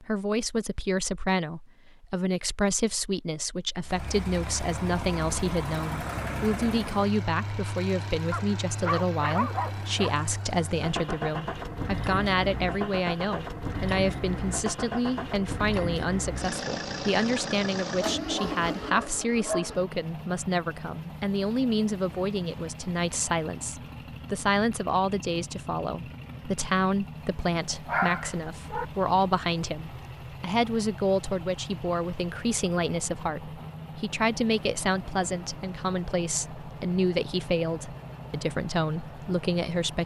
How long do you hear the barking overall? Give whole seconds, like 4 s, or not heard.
5 s.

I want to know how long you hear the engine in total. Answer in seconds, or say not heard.
36 s.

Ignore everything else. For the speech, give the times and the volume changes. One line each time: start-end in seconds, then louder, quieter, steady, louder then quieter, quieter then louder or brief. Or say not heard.
0.0-40.0 steady.